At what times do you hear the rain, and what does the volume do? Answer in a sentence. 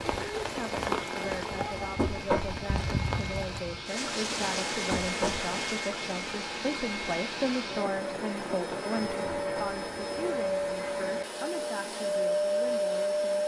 The rain can be heard from 0.0 to 13.4 s, getting quieter.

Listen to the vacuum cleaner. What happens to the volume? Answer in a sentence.
The loudness of the vacuum cleaner goes up.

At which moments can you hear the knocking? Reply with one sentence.
The knocking can be heard from 1.9 to 2.6 s, from 4.9 to 5.5 s and from 9.3 to 9.8 s.